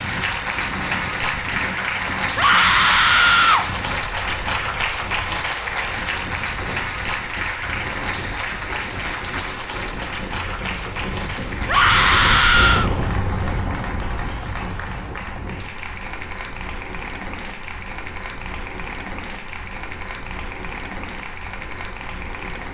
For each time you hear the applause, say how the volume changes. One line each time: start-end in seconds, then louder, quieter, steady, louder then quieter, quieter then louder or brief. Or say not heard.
0.0-22.7 quieter.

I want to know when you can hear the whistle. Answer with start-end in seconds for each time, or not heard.
not heard.